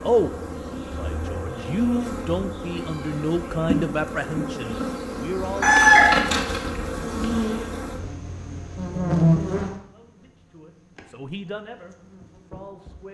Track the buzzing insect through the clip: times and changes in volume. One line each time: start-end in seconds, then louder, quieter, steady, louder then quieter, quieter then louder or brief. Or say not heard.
0.0-13.1 louder then quieter.